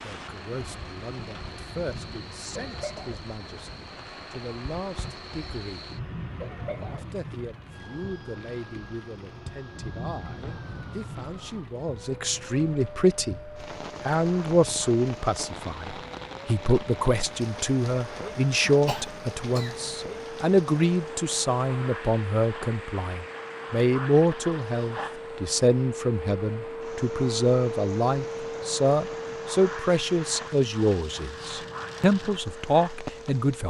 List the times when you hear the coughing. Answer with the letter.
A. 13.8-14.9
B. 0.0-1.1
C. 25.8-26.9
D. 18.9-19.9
D.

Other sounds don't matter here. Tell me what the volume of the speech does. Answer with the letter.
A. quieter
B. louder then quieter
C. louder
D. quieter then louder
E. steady
C.